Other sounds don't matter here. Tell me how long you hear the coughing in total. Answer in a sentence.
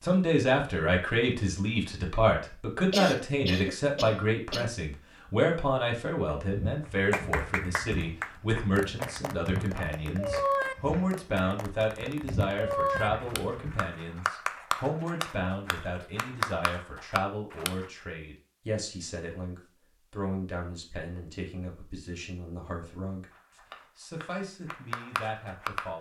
You can hear the coughing for 2 seconds altogether.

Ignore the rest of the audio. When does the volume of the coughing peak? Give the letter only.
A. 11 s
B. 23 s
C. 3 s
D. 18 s
C.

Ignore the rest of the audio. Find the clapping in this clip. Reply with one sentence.
The clapping can be heard from 7.1 to 17.9 s and from 23.3 to 25.9 s.